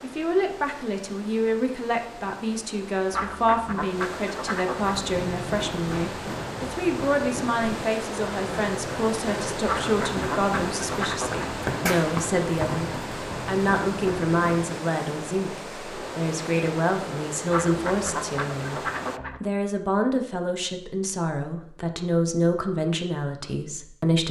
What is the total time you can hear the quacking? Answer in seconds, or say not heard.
6 s.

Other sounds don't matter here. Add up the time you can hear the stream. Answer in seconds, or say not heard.
19 s.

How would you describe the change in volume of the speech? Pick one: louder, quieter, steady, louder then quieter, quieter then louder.
steady.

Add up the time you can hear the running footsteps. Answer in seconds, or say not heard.
10 s.